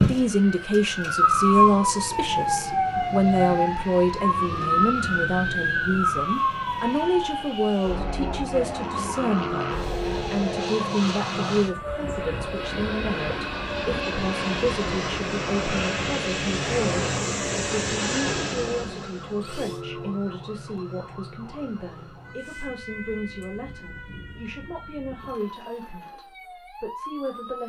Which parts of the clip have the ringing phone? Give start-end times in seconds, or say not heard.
9.3-10.8, 19.6-20.2.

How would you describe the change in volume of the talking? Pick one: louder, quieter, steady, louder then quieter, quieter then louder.
quieter.